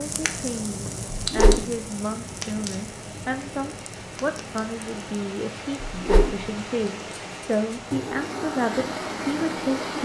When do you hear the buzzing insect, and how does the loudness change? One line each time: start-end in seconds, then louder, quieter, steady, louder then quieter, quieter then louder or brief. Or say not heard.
not heard.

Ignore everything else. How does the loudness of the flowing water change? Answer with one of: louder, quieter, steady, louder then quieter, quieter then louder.
louder.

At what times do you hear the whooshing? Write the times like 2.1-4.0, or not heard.
1.2-1.6, 5.8-6.5.